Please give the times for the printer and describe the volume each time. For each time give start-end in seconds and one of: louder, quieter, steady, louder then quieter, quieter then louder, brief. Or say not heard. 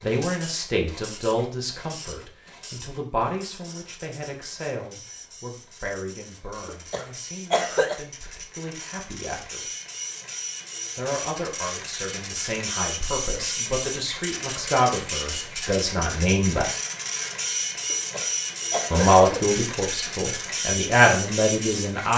0.0-22.1 louder.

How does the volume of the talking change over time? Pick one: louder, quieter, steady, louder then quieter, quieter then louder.
quieter then louder.